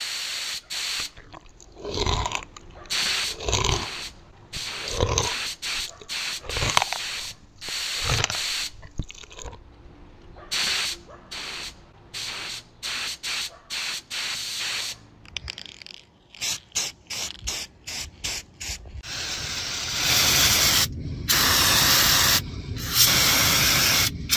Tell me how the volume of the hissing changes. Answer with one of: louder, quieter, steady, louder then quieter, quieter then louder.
louder.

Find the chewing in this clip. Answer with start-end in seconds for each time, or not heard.
0.9-9.6.